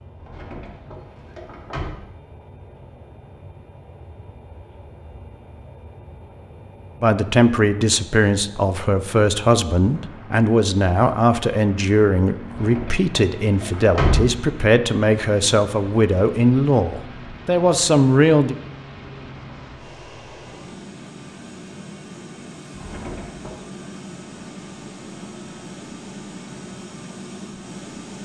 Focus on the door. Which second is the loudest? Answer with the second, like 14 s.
14 s.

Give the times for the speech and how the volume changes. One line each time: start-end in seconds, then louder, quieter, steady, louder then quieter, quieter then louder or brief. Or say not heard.
7.0-18.6 steady.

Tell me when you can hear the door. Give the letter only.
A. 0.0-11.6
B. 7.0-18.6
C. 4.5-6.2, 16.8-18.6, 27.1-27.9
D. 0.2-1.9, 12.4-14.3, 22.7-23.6
D.